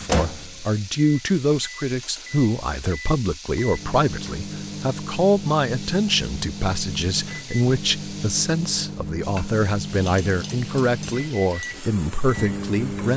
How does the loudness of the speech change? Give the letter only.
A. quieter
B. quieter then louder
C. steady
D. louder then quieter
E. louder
C.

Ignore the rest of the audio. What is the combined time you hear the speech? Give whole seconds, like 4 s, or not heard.
13 s.